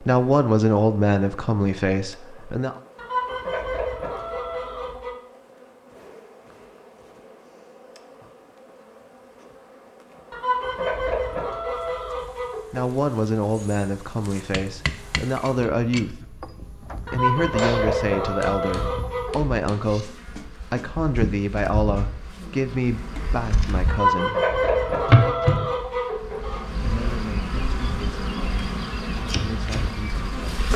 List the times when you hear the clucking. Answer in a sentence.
The clucking can be heard from 3.0 to 5.2 s, from 10.3 to 12.8 s, from 17.1 to 19.4 s and from 23.9 to 26.6 s.